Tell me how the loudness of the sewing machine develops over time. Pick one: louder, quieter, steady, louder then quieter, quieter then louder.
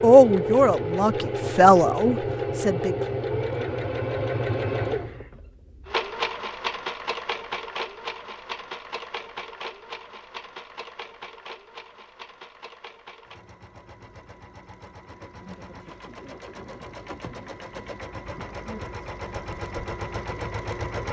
quieter then louder.